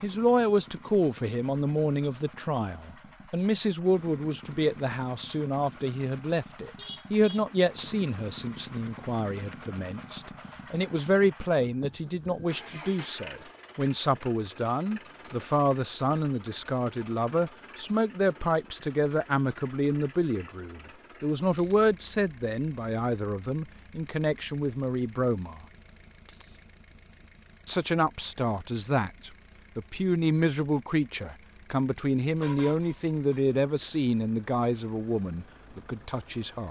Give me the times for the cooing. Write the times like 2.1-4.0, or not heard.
not heard.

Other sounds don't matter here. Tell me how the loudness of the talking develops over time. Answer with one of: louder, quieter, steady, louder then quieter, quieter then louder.
steady.